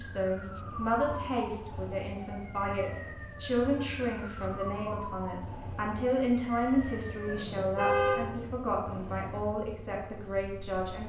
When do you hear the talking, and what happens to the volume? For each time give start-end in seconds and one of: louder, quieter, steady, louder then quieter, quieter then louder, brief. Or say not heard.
0.0-11.0 steady.